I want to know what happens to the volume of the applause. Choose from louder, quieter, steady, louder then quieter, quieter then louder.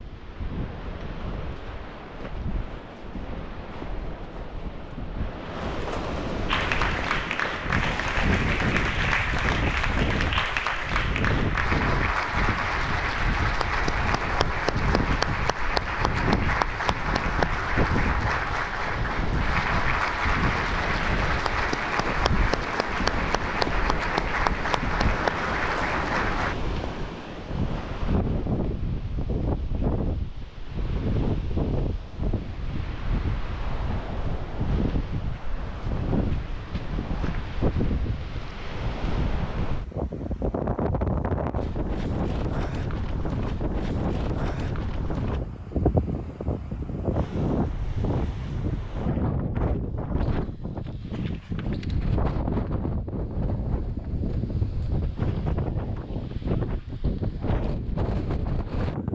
steady.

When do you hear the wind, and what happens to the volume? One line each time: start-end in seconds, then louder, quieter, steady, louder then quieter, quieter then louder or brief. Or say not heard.
0.0-59.1 steady.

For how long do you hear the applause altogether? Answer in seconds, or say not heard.
20 s.